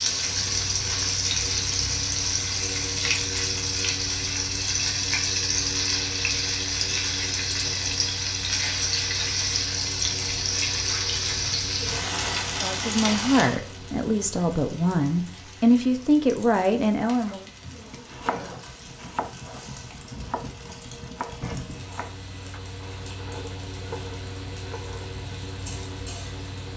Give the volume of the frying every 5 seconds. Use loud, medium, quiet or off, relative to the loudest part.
loud, loud, loud, quiet, quiet, quiet.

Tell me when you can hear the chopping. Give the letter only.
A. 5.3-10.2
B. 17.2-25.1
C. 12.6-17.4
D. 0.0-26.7
B.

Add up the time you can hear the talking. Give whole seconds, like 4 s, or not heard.
5 s.